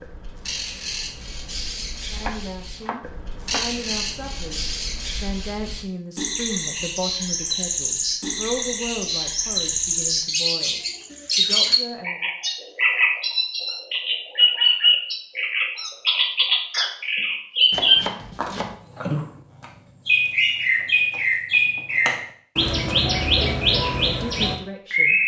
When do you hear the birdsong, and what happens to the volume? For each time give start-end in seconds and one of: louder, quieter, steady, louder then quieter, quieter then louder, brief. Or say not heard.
0.0-25.2 louder.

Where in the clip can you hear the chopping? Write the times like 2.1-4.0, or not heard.
2.1-3.6, 17.7-18.8.